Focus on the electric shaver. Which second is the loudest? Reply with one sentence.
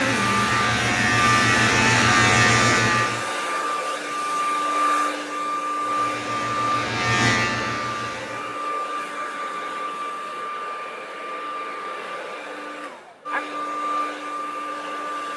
The volume of the electric shaver peaks at 2 seconds.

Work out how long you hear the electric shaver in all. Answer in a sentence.
You can hear the electric shaver for 6 seconds altogether.